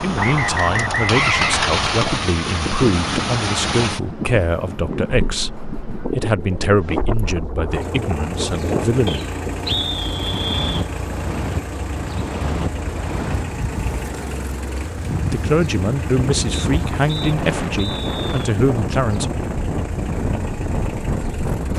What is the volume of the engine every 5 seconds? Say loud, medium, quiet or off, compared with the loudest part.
loud, medium, medium, medium, medium.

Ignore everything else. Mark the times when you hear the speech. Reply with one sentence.
The speech can be heard from 0.0 to 9.2 s and from 15.1 to 19.2 s.